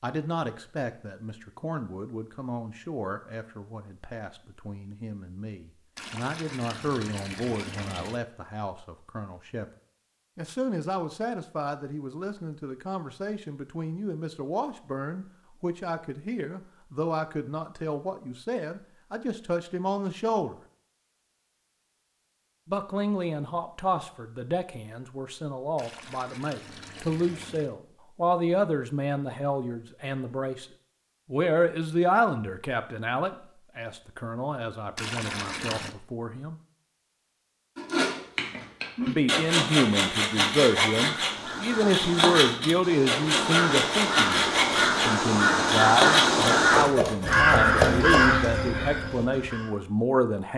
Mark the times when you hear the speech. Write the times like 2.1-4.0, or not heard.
0.0-9.7, 10.3-20.6, 22.6-30.6, 31.3-36.5, 39.0-50.5.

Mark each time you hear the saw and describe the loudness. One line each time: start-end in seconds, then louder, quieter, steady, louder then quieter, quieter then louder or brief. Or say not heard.
37.8-48.3 steady.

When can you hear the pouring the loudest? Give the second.
35 s.